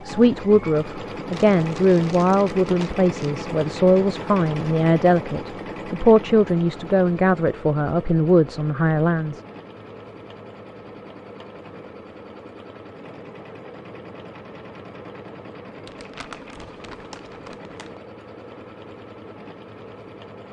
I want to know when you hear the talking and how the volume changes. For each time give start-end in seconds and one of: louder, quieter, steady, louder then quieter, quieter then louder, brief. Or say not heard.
0.1-9.4 steady.